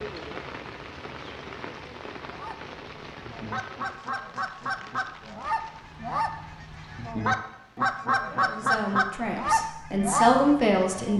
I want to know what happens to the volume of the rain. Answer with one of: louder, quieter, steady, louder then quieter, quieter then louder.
quieter.